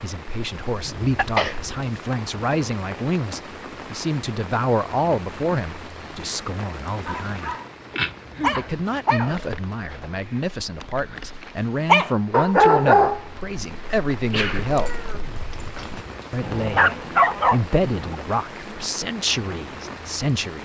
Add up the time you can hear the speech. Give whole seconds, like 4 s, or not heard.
18 s.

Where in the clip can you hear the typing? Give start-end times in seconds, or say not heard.
not heard.